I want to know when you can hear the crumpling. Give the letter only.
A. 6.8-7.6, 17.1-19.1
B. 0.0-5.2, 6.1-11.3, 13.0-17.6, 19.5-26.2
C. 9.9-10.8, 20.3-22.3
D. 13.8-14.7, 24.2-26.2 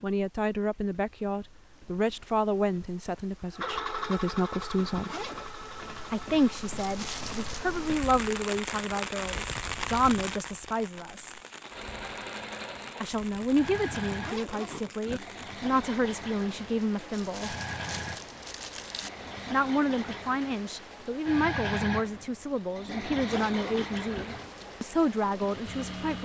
A.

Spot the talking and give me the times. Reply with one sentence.
The talking can be heard from 0.0 to 5.2 s, from 6.1 to 11.3 s, from 13.0 to 17.6 s and from 19.5 to 26.2 s.